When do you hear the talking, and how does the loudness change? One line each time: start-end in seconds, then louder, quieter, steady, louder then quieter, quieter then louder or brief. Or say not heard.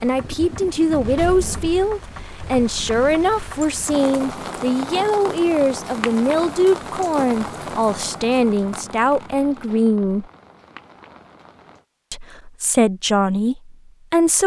0.0-10.2 steady
12.1-14.4 brief.